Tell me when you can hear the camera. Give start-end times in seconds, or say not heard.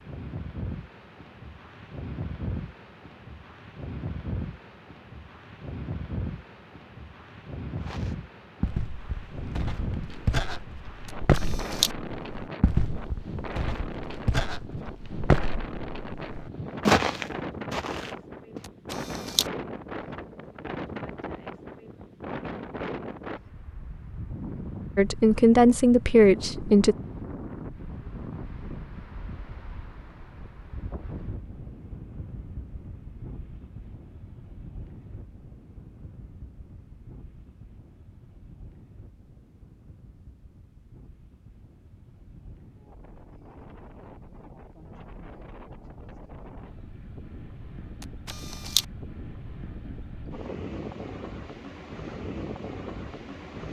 11.1-11.9, 18.6-19.5, 48.0-48.9.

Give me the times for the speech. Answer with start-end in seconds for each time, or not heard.
24.9-26.9.